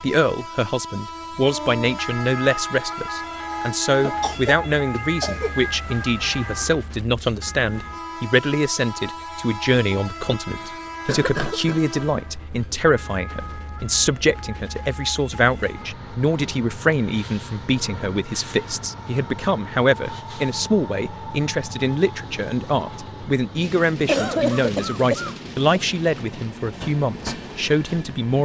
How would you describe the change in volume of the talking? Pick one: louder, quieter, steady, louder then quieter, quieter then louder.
steady.